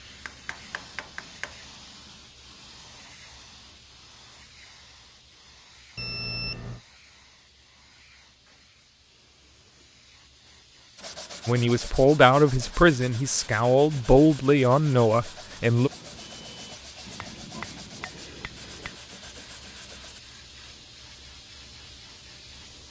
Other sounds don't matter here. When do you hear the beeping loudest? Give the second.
6 s.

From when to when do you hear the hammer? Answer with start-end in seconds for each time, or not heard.
0.2-1.6, 17.1-19.0.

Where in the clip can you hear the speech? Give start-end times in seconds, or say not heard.
11.4-15.9.